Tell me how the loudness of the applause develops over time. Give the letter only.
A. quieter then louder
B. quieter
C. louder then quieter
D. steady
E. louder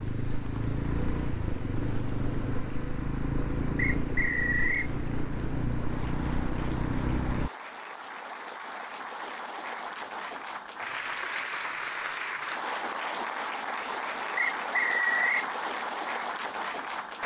E.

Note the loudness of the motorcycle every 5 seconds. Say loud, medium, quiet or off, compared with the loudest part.
loud, loud, off, off.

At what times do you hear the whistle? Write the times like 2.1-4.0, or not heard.
3.8-4.9, 14.3-15.4.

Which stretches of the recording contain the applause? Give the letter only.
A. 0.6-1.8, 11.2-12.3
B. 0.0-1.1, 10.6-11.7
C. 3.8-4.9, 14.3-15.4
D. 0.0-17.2
D.